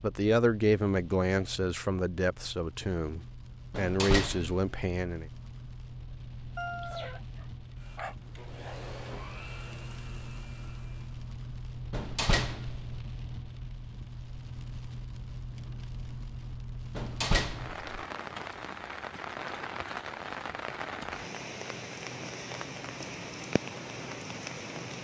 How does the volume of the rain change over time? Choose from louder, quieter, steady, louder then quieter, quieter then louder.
louder.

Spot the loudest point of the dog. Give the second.
7 s.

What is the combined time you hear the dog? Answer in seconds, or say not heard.
2 s.